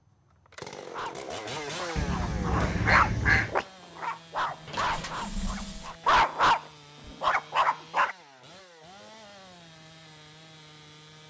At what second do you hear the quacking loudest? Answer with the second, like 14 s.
3 s.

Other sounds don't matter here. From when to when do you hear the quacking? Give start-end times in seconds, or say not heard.
1.9-3.5.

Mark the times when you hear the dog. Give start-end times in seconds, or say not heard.
0.8-8.2.